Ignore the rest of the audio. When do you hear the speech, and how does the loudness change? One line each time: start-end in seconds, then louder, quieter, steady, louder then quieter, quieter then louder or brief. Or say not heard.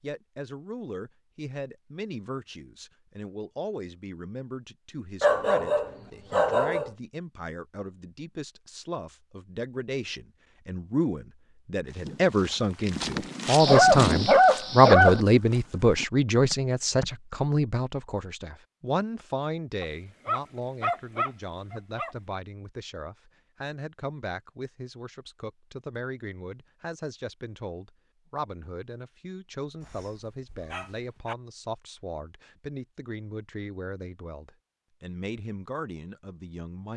0.0-36.9 louder then quieter.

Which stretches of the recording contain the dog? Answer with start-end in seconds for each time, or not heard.
5.2-6.9, 13.6-15.2, 19.8-22.1, 29.8-31.4.